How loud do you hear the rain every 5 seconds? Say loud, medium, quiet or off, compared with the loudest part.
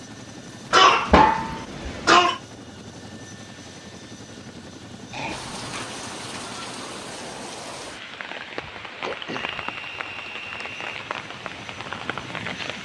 off, loud, loud.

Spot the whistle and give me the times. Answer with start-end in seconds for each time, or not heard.
9.3-10.8.